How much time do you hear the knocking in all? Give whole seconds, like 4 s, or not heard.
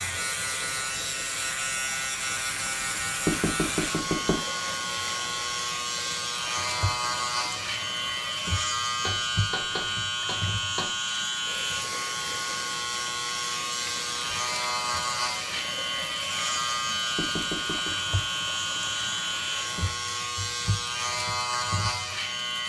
4 s.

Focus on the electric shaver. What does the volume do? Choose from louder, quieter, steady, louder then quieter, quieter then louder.
steady.